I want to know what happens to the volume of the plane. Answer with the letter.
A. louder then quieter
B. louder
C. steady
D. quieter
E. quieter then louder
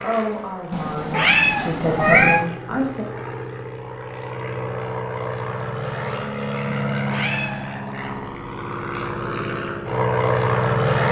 B.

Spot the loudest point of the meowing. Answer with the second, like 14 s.
2 s.